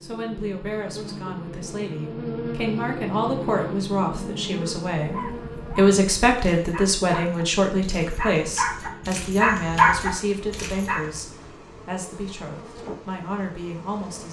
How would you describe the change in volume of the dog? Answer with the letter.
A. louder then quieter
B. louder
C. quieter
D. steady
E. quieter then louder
B.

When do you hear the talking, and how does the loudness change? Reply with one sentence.
The talking can be heard from 0.0 to 14.2 s, getting louder then quieter.